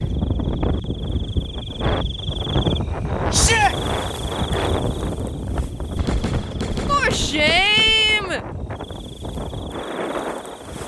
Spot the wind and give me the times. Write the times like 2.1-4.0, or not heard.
0.0-10.8.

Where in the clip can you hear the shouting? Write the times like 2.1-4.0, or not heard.
3.3-3.8, 6.8-8.4.